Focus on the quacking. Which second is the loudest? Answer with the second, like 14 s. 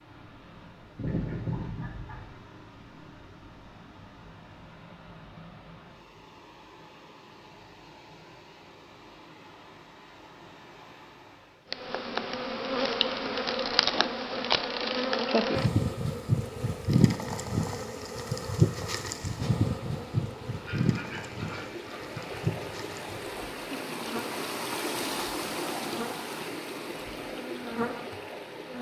1 s.